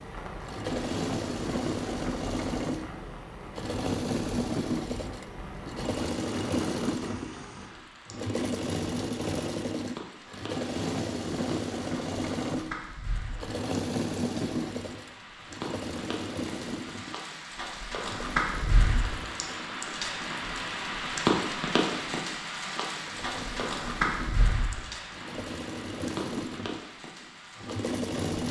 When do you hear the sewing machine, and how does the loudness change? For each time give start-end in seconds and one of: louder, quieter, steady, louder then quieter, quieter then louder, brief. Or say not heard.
0.0-28.4 quieter then louder.